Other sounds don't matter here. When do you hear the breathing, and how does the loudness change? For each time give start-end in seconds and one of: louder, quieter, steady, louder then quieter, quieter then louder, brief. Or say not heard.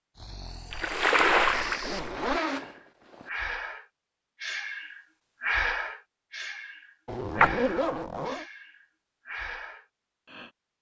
0.1-10.5 louder then quieter.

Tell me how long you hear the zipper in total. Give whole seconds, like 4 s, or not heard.
3 s.